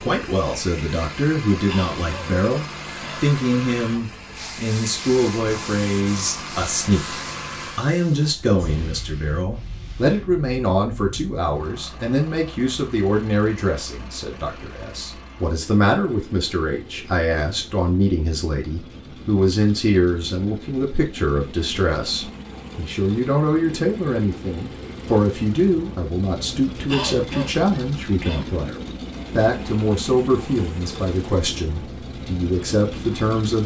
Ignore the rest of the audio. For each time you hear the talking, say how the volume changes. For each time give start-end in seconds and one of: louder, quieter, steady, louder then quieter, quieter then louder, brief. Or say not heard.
0.0-33.6 steady.